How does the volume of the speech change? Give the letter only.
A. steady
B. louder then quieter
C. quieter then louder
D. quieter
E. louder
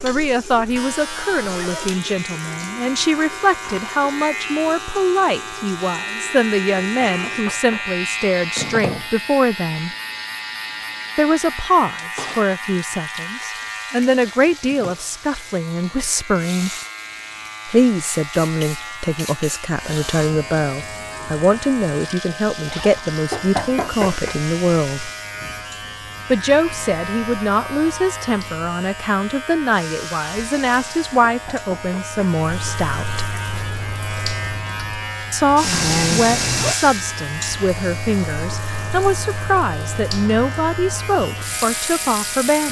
A.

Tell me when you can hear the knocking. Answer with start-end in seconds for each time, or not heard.
6.8-8.0, 23.3-24.4, 31.2-32.2.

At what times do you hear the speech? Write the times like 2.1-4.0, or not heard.
0.0-9.9, 11.2-16.7, 17.6-25.1, 26.3-33.2, 35.3-42.6.